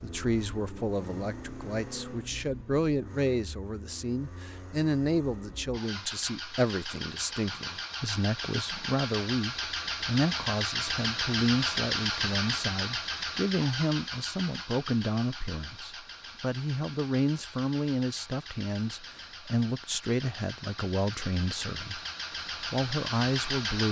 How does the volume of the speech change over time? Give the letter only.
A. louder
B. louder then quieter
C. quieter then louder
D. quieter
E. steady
E.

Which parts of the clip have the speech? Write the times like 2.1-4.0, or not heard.
0.0-23.8.